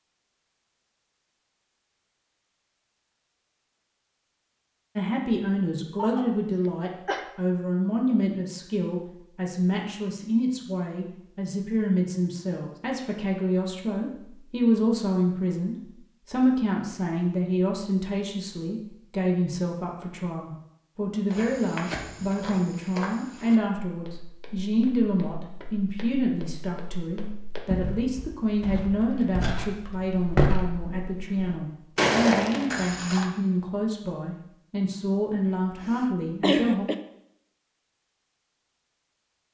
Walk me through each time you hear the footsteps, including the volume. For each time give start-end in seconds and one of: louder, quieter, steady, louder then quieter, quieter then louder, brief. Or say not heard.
21.3-33.2 quieter then louder.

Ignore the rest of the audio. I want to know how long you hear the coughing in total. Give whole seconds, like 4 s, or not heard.
3 s.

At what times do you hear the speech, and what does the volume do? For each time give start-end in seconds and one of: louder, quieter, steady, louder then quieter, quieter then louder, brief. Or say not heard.
5.0-36.9 steady.